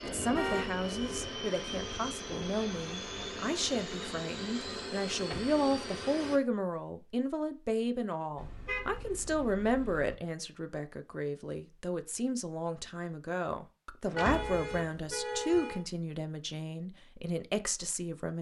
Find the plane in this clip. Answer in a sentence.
The plane can be heard from 0.0 to 6.4 s.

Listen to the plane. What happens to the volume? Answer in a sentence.
The volume of the plane stays about the same.